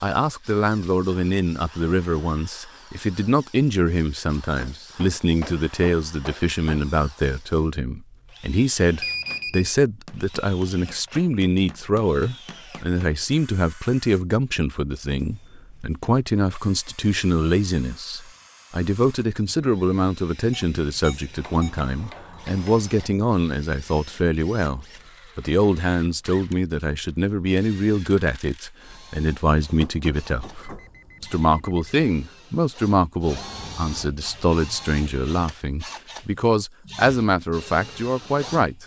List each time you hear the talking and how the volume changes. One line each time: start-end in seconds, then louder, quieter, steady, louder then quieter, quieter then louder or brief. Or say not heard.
0.0-38.8 steady.